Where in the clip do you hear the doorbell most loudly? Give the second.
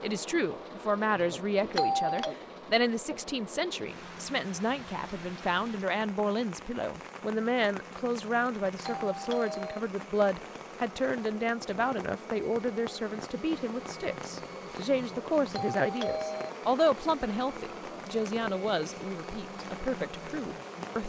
2 s.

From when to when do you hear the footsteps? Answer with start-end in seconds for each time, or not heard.
not heard.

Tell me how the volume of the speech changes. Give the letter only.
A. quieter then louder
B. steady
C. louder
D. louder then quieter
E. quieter
B.